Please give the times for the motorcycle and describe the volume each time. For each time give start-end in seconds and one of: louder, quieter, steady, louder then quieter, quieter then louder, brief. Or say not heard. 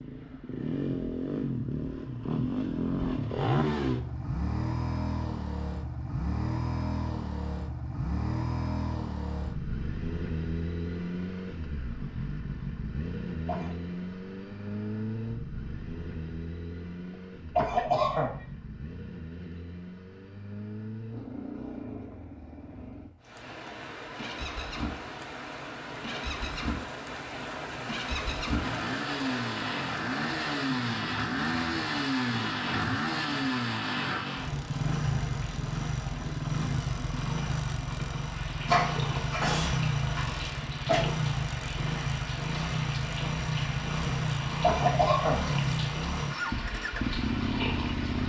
0.0-48.2 quieter then louder.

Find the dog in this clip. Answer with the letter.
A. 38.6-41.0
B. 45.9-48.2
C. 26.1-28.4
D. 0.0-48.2
A.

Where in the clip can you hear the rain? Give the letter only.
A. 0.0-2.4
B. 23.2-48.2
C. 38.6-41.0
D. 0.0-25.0
B.